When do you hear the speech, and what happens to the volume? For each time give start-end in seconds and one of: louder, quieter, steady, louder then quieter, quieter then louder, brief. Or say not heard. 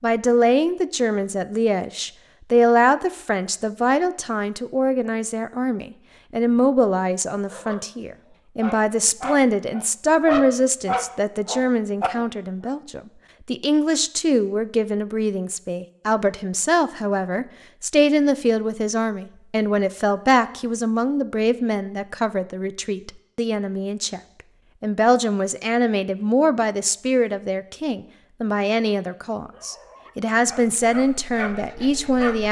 0.0-24.2 steady
24.8-32.4 steady.